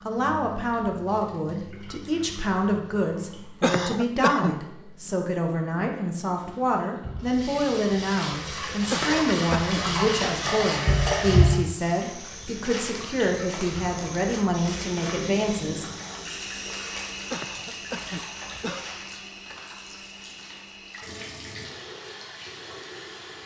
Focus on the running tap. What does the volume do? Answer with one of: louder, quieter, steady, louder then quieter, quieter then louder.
louder then quieter.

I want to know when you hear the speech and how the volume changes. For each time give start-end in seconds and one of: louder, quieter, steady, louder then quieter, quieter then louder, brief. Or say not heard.
0.1-15.8 steady.